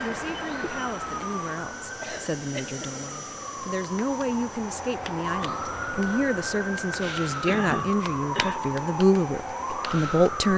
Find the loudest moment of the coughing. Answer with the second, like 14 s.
8 s.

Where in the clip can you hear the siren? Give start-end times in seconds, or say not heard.
0.0-10.5.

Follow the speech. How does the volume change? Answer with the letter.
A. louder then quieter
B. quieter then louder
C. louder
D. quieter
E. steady
C.